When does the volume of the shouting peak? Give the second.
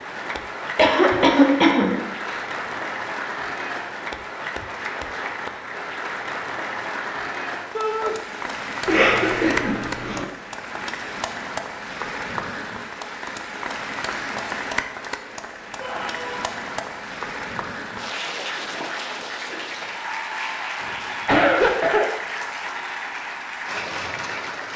8 s.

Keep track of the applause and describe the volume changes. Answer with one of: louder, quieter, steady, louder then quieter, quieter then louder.
steady.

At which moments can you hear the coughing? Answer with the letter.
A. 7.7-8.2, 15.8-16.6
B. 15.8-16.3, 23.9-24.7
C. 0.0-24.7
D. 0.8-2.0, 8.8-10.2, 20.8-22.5
D.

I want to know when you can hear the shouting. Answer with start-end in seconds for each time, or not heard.
7.7-8.2, 15.8-16.6.